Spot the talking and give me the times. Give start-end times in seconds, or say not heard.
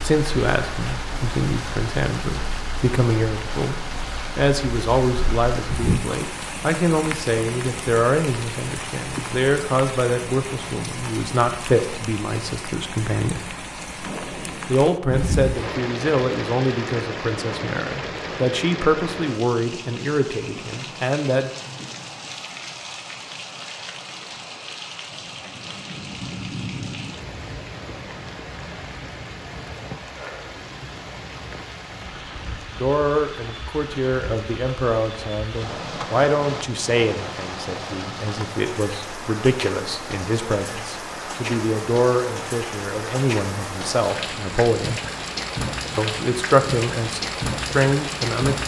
0.0-13.4, 14.7-21.5, 32.8-45.0, 46.0-48.6.